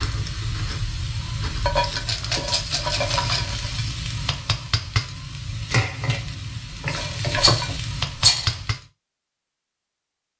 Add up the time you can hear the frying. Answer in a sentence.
The frying can be heard for 9 seconds in total.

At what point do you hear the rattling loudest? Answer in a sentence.
The loudest moment of the rattling is at 8 seconds.